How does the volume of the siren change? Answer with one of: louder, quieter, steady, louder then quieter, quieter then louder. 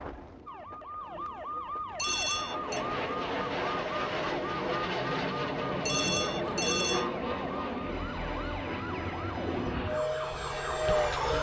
steady.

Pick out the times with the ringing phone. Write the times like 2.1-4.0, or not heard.
1.9-2.8, 5.8-7.0.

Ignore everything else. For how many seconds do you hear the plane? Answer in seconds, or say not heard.
9 s.